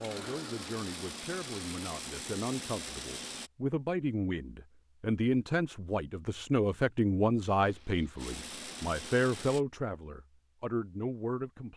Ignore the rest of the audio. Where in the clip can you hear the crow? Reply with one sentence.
You can't hear the crow here.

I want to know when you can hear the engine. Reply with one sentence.
You can hear the engine from 0.0 to 3.5 s and from 7.5 to 9.7 s.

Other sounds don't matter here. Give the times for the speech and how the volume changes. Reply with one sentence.
The speech can be heard from 0.0 to 11.7 s, getting louder.